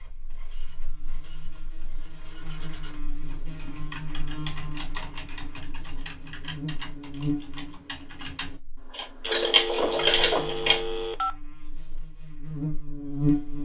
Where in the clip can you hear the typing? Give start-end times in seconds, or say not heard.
3.2-10.8.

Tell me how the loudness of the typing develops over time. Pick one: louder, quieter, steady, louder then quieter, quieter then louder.
louder.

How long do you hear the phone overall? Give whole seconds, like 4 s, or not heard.
2 s.